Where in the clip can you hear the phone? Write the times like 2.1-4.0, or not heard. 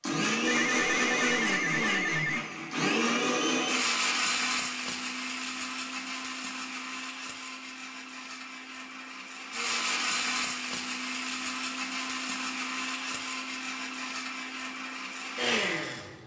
0.5-2.4.